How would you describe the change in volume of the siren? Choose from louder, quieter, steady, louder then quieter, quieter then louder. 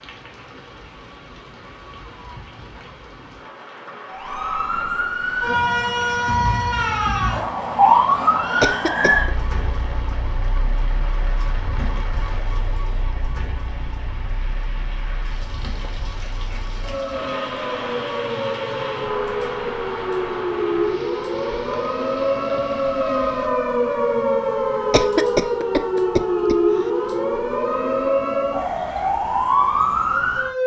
quieter then louder.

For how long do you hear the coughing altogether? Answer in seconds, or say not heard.
2 s.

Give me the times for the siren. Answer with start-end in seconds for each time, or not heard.
4.1-30.6.